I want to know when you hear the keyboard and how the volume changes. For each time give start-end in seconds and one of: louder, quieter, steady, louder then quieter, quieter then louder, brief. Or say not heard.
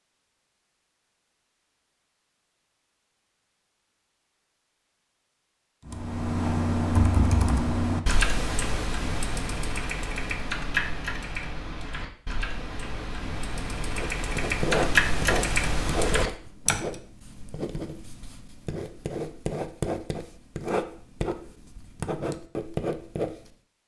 5.8-17.0 quieter then louder.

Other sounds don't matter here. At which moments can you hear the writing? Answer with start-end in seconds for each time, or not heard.
14.2-23.5.